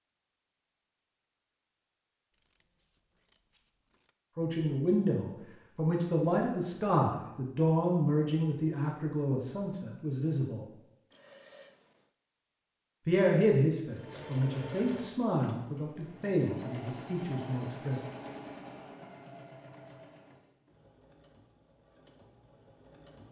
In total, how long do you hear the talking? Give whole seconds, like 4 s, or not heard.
11 s.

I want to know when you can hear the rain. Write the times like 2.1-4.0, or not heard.
not heard.